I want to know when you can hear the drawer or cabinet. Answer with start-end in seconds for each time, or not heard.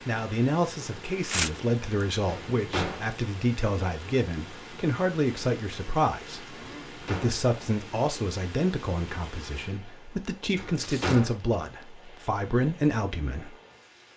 2.2-3.0, 6.6-7.4, 10.6-11.3.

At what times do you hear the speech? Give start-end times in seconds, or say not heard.
0.1-13.6.